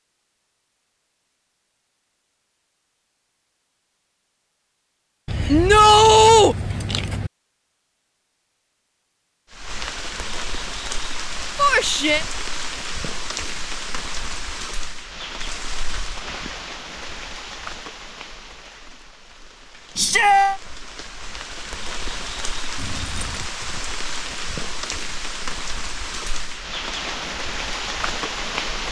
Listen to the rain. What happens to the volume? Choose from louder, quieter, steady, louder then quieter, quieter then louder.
quieter then louder.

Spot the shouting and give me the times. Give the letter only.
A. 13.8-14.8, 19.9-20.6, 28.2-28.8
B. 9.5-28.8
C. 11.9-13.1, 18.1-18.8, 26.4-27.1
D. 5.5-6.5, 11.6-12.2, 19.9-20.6
D.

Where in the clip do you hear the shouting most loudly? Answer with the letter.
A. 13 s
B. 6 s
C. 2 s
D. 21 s
B.